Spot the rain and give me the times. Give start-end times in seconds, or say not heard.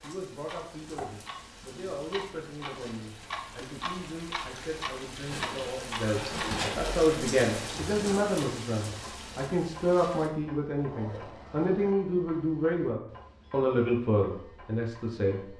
0.0-10.3.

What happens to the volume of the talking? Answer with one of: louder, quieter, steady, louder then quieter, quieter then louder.
louder.